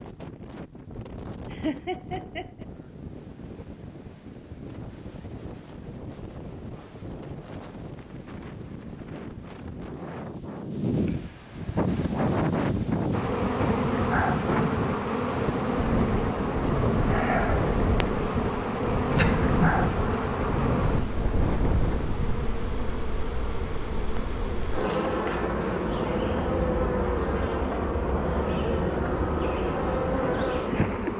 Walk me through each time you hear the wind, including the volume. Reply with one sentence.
You can hear the wind from 0.0 to 22.6 s, getting louder.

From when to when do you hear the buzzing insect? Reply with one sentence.
You can hear the buzzing insect from 13.1 to 31.1 s.